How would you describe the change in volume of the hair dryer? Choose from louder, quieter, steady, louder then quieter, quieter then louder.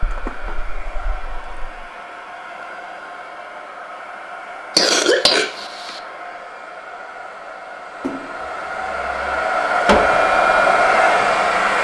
louder.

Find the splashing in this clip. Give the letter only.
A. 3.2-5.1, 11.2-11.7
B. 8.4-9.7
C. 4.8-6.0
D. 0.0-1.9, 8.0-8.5
D.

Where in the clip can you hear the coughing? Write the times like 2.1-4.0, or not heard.
4.8-6.0.